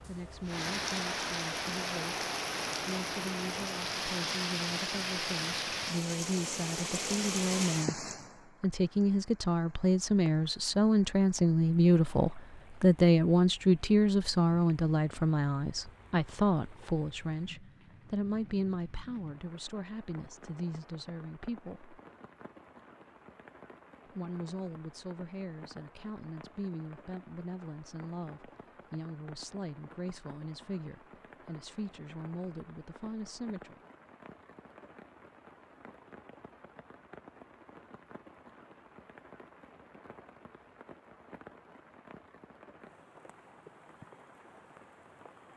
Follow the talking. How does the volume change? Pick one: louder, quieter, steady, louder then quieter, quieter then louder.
louder then quieter.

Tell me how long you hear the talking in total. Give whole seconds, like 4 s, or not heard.
32 s.